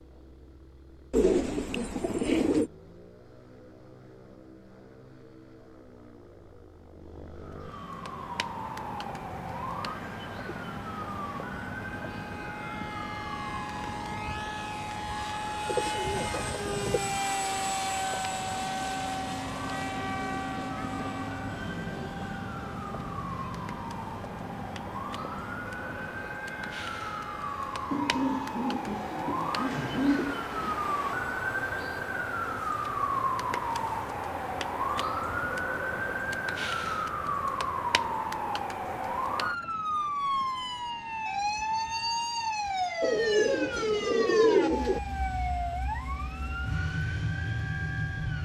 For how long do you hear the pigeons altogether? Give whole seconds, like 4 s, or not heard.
8 s.